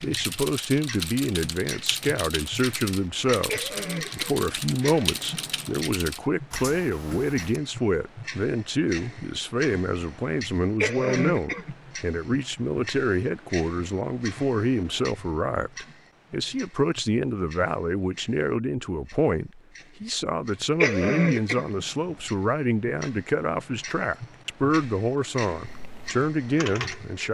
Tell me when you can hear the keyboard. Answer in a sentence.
You can hear the keyboard from 0.0 to 7.6 s and from 25.6 to 27.2 s.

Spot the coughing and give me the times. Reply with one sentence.
You can hear the coughing from 3.5 to 4.4 s, from 10.8 to 11.7 s and from 20.8 to 21.7 s.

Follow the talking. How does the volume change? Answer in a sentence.
The volume of the talking stays about the same.